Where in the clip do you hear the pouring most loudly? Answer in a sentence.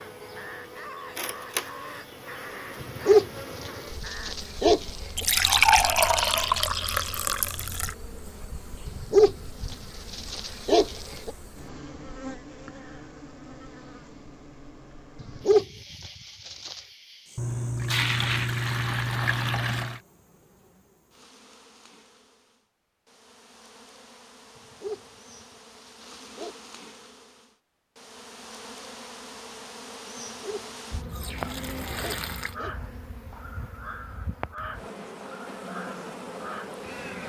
The loudest moment of the pouring is at 6 seconds.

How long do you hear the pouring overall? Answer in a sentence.
You can hear the pouring for 7 seconds altogether.